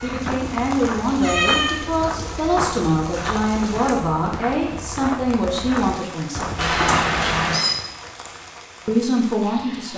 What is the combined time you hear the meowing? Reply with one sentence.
You can hear the meowing for 2 seconds altogether.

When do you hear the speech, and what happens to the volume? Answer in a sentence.
You can hear the speech from 0.0 to 6.7 s, at a steady volume; and briefly from 8.8 to 9.9 s.